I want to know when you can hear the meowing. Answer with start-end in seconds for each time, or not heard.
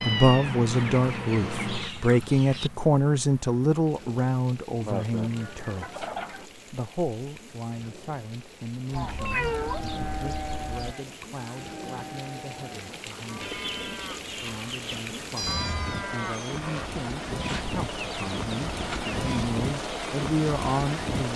0.0-1.9, 9.2-9.8, 15.3-16.1.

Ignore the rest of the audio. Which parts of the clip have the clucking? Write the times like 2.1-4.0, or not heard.
0.7-2.7, 4.8-6.5, 8.9-10.9, 13.4-15.2, 17.4-19.1.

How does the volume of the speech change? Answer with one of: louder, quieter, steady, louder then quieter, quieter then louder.
quieter then louder.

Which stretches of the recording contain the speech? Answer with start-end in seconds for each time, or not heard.
0.0-13.6, 14.4-21.3.